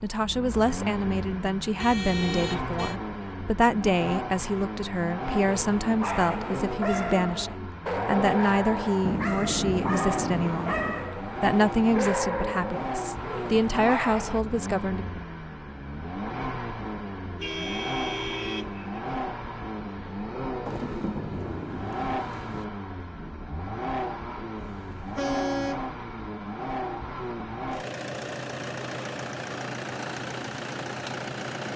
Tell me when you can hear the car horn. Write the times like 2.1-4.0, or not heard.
1.8-3.0, 17.4-19.0, 24.6-25.9.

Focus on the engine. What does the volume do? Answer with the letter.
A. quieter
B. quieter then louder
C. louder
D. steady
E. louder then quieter
D.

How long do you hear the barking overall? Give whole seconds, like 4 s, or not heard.
9 s.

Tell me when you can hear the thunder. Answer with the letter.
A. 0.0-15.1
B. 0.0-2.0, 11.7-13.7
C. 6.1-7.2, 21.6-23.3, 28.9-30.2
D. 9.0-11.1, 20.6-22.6
D.